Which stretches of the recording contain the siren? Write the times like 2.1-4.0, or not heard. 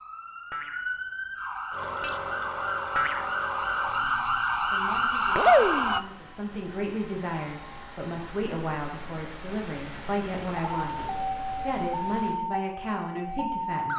0.0-6.0, 10.6-13.9.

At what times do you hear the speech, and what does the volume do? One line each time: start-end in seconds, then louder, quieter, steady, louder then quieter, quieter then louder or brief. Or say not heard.
4.0-13.9 louder.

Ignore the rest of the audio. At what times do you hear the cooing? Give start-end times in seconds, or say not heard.
not heard.